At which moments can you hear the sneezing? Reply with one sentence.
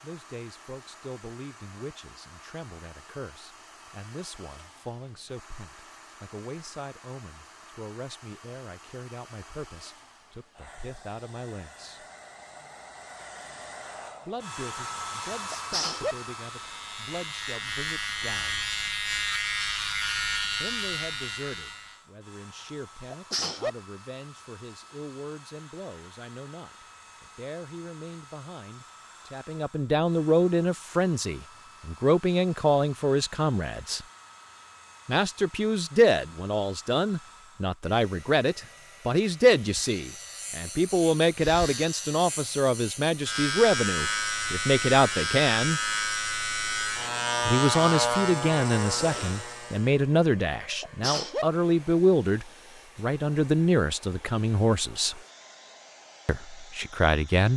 The sneezing can be heard from 15.5 to 16.1 s, from 23.1 to 23.7 s and from 50.8 to 51.5 s.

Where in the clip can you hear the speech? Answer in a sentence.
The speech can be heard from 0.0 to 12.1 s, from 14.2 to 18.6 s, from 20.6 to 34.0 s, from 35.0 to 45.8 s, from 47.5 to 55.2 s and from 56.2 to 57.5 s.